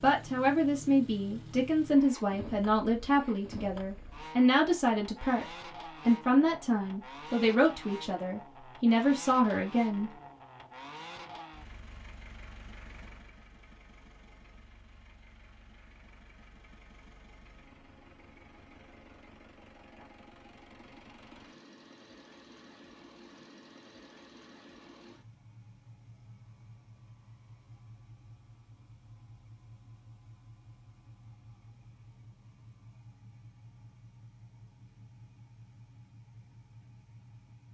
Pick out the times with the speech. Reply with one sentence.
You can hear the speech from 0.0 to 10.1 s.